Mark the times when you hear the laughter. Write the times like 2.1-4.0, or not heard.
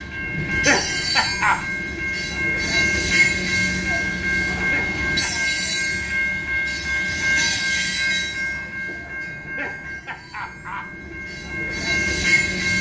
0.3-1.6, 4.5-5.3, 9.3-10.9.